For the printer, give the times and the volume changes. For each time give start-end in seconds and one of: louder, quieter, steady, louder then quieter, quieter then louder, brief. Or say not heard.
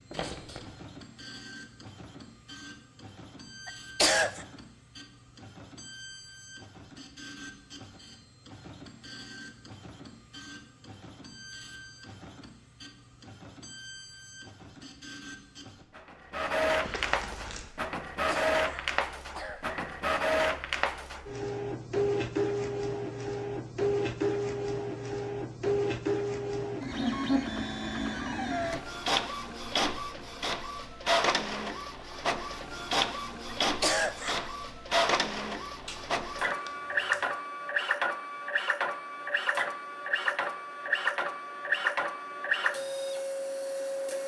0.0-44.2 louder.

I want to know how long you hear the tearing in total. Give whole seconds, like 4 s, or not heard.
3 s.